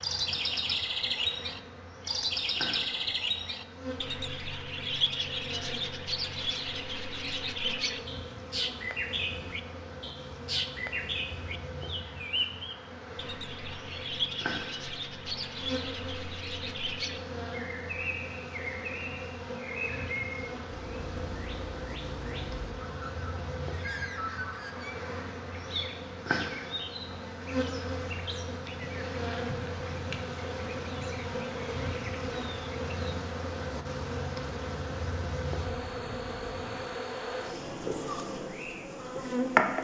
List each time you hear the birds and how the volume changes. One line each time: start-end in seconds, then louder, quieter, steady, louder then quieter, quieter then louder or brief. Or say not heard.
0.0-33.1 quieter.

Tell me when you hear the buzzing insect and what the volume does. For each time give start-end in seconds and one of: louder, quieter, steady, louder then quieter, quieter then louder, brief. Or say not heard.
0.0-39.7 louder.